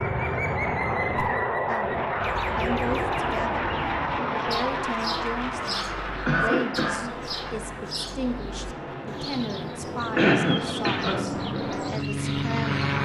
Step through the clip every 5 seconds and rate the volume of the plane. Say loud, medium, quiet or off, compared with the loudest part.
loud, medium, loud.